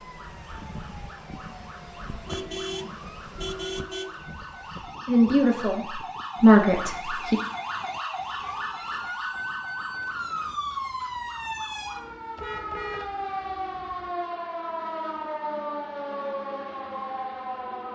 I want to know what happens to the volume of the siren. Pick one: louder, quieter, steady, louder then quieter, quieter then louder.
louder.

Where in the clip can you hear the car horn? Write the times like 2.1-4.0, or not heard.
2.2-4.2, 8.3-9.3, 12.3-13.2.